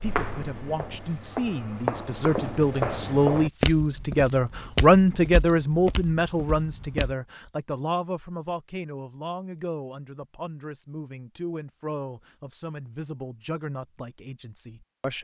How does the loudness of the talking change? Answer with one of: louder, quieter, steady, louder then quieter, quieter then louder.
louder then quieter.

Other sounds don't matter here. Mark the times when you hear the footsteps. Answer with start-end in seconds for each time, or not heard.
0.0-7.2.